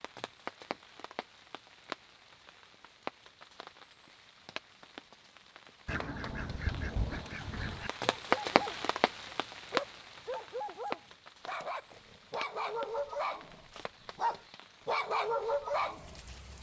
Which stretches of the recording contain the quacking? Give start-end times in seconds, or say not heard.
5.8-7.9.